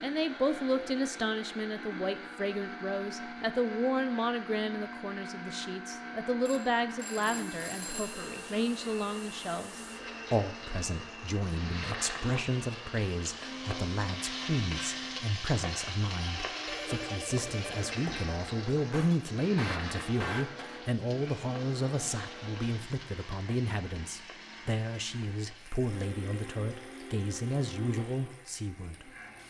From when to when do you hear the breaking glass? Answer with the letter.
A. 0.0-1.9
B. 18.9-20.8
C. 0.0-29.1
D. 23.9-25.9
B.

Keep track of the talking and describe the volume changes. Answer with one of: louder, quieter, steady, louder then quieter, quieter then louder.
steady.